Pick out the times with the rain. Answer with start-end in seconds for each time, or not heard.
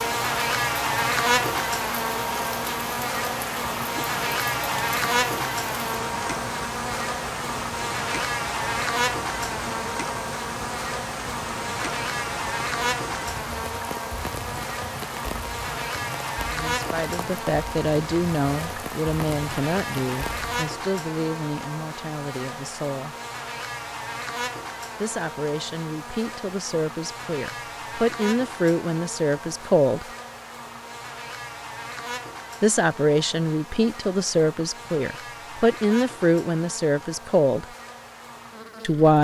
0.0-20.6.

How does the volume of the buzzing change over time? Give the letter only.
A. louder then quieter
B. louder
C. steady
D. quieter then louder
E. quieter
E.